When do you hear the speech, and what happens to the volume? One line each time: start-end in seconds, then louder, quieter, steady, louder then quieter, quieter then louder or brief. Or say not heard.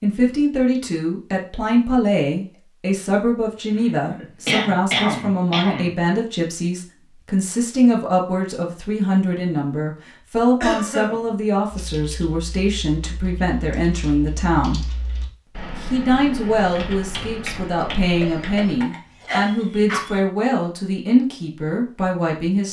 0.0-14.8 steady
15.8-22.6 steady.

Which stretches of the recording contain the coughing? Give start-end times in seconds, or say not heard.
3.8-5.9, 10.6-11.2, 18.2-20.2.